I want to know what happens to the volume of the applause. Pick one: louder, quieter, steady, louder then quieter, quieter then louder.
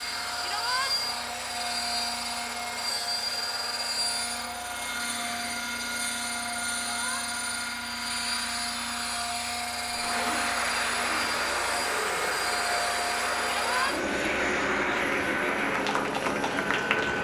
steady.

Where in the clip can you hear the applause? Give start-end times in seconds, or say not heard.
9.8-17.1.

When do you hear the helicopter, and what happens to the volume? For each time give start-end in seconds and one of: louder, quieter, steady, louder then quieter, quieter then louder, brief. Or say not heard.
0.0-17.1 steady.